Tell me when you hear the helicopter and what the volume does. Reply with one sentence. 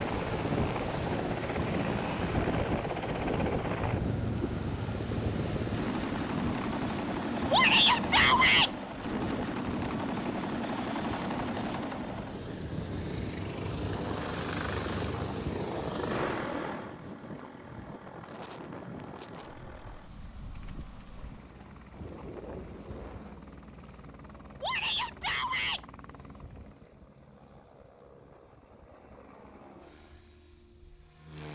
The helicopter can be heard from 0.0 to 31.4 s, getting quieter.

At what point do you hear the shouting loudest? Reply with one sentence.
The loudest moment of the shouting is at 8 seconds.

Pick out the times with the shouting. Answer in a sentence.
The shouting can be heard from 7.5 to 8.7 s and from 24.6 to 25.8 s.